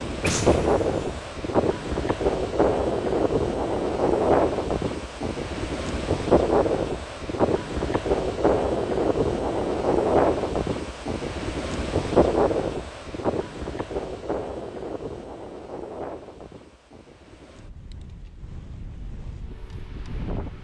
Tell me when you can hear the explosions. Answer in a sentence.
You can hear the explosions from 0.2 to 1.3 s.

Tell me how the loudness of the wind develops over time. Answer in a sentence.
The loudness of the wind goes down.